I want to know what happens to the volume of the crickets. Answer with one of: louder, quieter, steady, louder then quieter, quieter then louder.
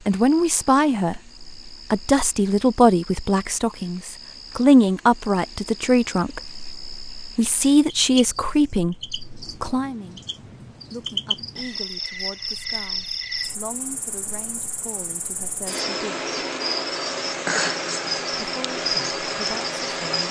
louder.